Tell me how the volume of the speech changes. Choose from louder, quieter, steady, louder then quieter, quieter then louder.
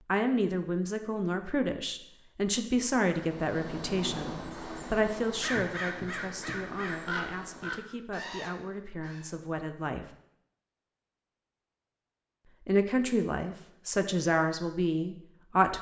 quieter then louder.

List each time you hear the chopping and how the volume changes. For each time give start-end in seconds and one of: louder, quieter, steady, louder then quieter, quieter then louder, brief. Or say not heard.
not heard.